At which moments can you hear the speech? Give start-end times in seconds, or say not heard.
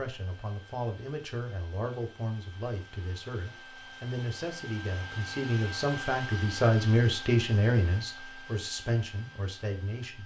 0.0-10.2.